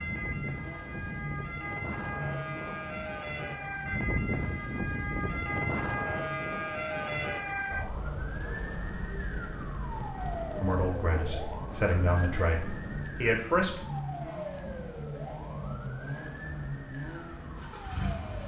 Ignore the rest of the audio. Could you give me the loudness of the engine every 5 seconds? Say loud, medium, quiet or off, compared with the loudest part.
loud, medium, loud, loud.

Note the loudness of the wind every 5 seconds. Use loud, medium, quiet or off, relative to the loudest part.
loud, loud, medium, off.